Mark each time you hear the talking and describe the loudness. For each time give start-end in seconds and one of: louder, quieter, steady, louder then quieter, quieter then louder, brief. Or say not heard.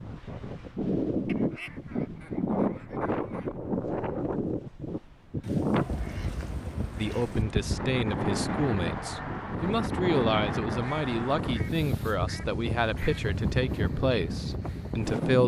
7.0-15.4 steady.